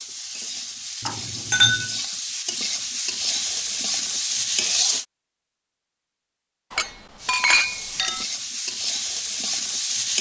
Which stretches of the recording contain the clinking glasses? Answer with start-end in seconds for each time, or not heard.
1.0-1.9, 6.7-8.2.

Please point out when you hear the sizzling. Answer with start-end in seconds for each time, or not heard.
0.0-5.0, 7.2-10.1.